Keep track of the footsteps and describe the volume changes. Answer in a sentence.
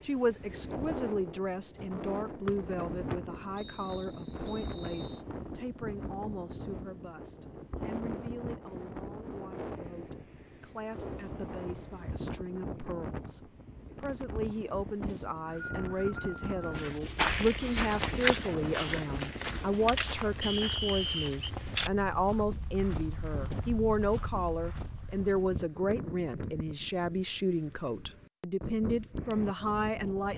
The loudness of the footsteps goes down.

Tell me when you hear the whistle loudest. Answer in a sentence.
The loudest moment of the whistle is at 21 seconds.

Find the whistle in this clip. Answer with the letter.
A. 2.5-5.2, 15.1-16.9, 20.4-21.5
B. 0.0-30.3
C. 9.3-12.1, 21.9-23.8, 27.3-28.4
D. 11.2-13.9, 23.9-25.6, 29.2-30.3
A.